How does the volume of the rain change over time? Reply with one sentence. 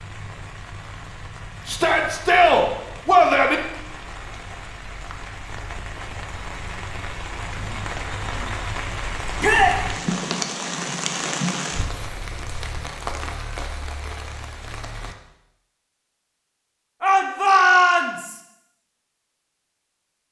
The volume of the rain goes up, then down.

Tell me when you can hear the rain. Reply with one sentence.
The rain can be heard from 0.0 to 15.2 s.